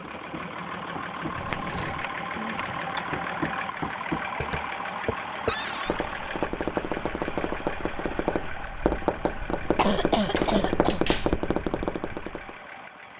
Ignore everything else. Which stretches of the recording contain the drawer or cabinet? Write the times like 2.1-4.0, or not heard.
1.3-2.1, 5.5-6.0, 10.3-11.3.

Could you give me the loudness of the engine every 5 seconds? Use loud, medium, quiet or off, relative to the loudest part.
loud, loud, medium.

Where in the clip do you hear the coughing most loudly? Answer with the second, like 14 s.
10 s.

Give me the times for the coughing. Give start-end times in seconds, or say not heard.
1.9-3.0, 9.8-11.0.